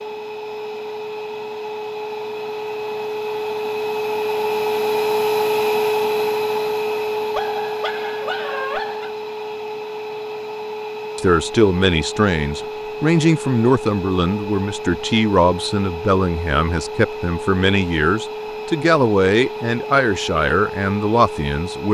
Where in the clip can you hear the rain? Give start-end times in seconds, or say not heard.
not heard.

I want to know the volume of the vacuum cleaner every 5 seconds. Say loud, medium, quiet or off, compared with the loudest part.
loud, loud, medium, medium, medium.